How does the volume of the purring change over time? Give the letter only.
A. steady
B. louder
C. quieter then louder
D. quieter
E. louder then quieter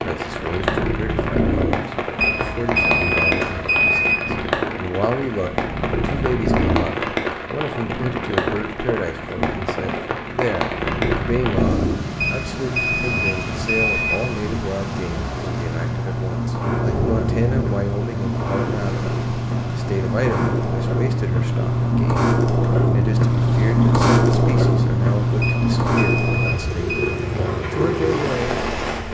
B.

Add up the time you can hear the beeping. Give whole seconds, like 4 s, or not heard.
6 s.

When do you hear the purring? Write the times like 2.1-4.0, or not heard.
0.0-29.0.